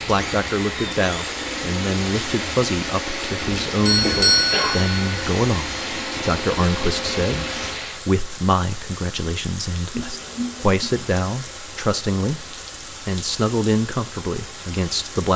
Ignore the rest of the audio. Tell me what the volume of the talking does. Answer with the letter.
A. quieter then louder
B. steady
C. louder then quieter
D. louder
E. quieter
B.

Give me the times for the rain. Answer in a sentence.
The rain can be heard from 0.0 to 15.3 s.